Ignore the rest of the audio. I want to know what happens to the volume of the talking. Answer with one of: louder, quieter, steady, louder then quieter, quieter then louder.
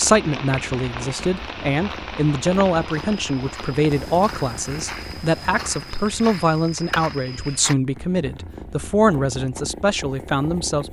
steady.